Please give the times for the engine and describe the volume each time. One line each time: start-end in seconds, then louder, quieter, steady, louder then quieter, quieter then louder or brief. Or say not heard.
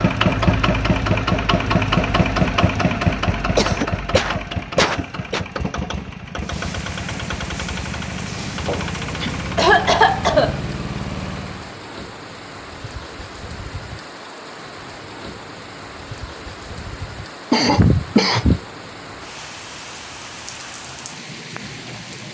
0.0-11.8 quieter.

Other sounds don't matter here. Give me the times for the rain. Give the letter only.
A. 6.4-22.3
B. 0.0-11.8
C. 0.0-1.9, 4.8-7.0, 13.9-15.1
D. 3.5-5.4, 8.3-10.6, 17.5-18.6
A.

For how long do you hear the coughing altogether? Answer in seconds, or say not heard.
5 s.